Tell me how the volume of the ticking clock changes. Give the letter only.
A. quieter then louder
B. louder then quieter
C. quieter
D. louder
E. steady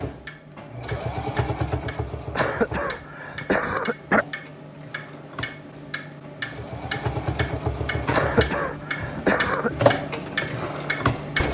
D.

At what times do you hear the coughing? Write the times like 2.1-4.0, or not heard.
2.4-4.2, 8.1-9.7.